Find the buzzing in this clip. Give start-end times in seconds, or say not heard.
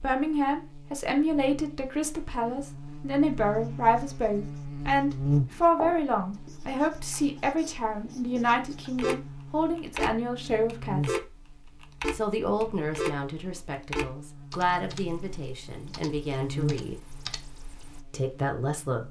0.0-19.0.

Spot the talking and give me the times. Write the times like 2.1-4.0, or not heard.
0.0-11.2, 12.1-17.0, 18.1-19.0.